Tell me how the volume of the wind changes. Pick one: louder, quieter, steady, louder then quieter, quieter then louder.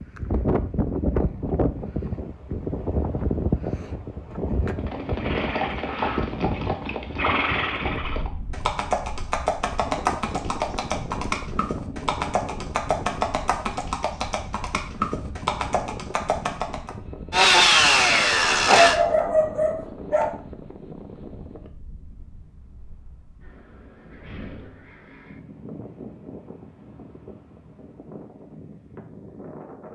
quieter.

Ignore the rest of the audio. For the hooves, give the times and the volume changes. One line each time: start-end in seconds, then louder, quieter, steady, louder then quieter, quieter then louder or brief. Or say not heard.
4.8-16.9 steady.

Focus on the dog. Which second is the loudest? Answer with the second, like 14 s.
19 s.